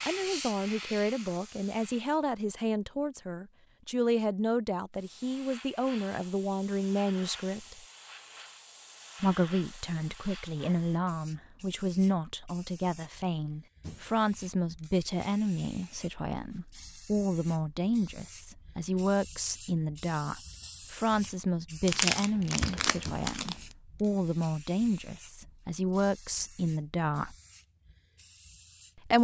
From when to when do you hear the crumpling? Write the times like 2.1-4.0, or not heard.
21.9-23.6.